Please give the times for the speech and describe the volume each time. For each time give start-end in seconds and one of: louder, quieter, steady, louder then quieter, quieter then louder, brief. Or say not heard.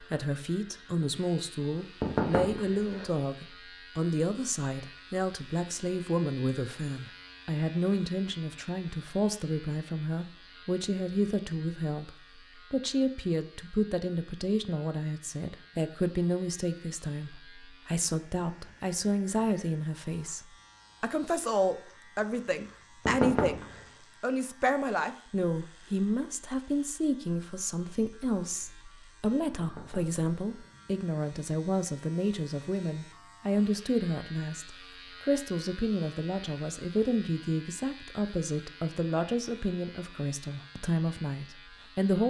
0.0-42.2 steady.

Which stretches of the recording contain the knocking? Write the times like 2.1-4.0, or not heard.
2.0-3.1, 23.1-23.8, 29.6-30.7.